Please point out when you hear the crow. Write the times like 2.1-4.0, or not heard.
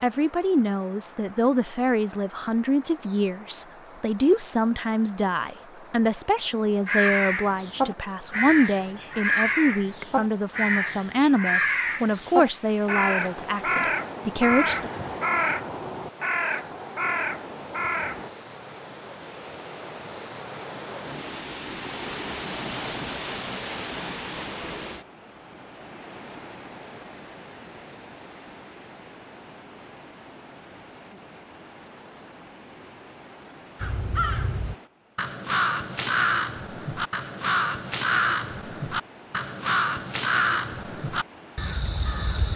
6.8-18.3, 33.8-42.5.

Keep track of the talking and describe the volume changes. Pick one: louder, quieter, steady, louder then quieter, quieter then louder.
steady.